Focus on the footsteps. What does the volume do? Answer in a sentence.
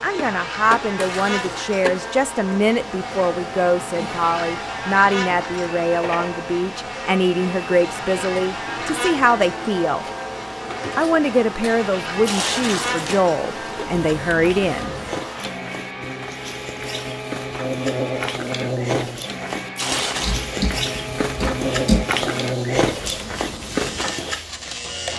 The loudness of the footsteps goes up.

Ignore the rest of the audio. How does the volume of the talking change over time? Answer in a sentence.
The volume of the talking stays about the same.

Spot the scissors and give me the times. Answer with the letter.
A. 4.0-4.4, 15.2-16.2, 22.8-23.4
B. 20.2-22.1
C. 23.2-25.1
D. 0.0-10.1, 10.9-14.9
B.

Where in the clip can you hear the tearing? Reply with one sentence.
You can hear the tearing from 0.9 to 1.4 s, from 12.2 to 13.2 s and from 19.8 to 20.4 s.